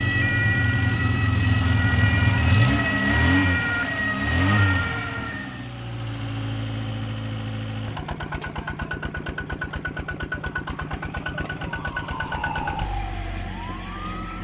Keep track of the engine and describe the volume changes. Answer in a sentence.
The loudness of the engine goes down.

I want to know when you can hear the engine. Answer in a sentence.
You can hear the engine from 0.0 to 14.3 s.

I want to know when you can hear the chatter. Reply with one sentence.
The chatter can't be heard in this clip.